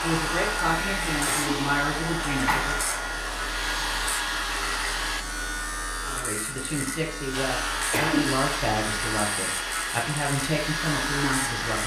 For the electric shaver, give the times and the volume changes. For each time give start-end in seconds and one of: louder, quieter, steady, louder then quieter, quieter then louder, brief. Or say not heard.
0.0-11.8 steady.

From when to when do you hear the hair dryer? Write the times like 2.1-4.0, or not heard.
0.0-5.2, 7.3-11.8.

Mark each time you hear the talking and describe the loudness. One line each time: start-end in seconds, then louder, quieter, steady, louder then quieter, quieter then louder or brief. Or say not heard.
0.0-2.8 brief
6.0-11.8 steady.